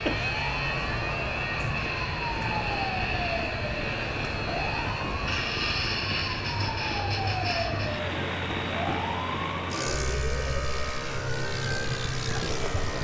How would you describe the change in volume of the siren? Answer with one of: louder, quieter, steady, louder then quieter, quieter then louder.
steady.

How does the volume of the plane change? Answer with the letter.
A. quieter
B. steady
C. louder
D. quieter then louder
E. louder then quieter
B.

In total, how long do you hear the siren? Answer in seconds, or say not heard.
13 s.